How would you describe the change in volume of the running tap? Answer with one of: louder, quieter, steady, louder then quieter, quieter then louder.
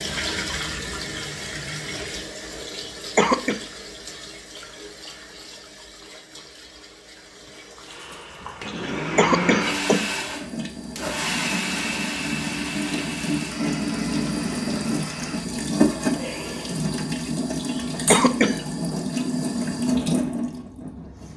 quieter then louder.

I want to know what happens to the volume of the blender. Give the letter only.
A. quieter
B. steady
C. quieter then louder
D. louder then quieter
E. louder
A.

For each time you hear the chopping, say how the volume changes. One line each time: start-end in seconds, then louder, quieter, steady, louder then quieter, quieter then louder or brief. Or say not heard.
not heard.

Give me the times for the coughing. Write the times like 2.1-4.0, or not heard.
2.6-3.6, 8.7-10.1, 17.6-18.6.